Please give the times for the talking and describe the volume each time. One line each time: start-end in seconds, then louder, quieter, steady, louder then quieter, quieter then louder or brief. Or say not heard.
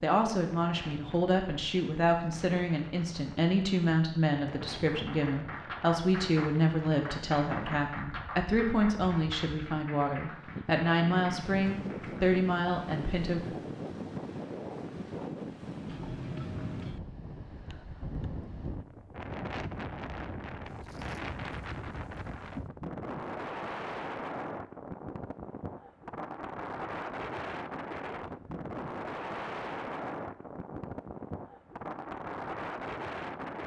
0.0-13.4 steady.